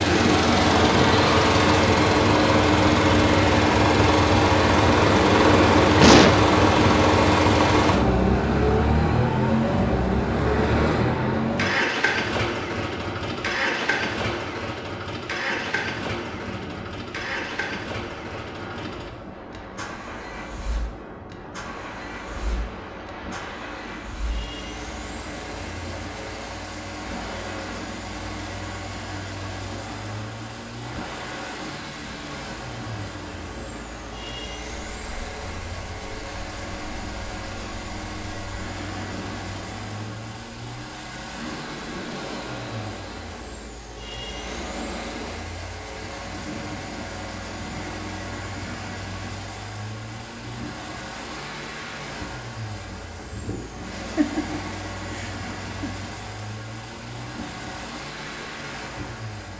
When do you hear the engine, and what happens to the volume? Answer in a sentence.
The engine can be heard from 0.0 to 59.5 s, getting quieter.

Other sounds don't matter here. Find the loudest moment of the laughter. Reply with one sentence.
The volume of the laughter peaks at 6 seconds.